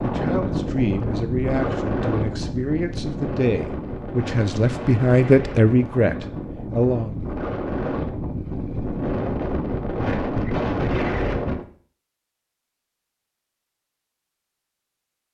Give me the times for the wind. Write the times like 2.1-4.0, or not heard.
0.0-11.7.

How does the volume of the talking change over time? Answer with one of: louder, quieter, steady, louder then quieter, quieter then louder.
louder.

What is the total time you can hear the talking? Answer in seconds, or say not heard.
7 s.